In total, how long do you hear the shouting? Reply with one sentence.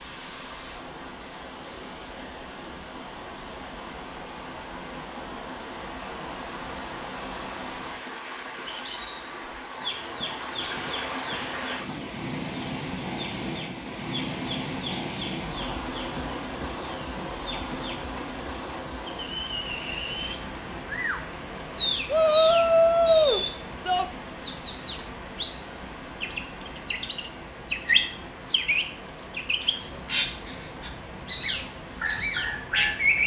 You can hear the shouting for 2 seconds altogether.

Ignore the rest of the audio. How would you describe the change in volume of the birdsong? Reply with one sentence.
The loudness of the birdsong goes up.